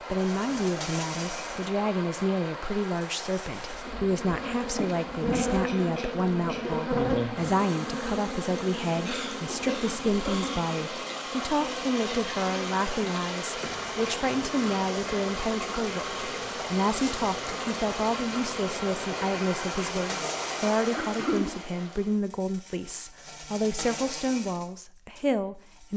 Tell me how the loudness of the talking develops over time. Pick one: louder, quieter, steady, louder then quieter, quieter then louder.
steady.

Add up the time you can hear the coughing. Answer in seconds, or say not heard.
4 s.